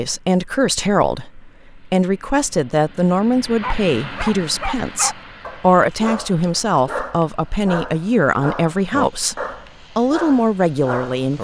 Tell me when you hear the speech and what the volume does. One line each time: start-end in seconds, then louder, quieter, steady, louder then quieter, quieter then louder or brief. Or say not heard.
0.0-11.3 steady.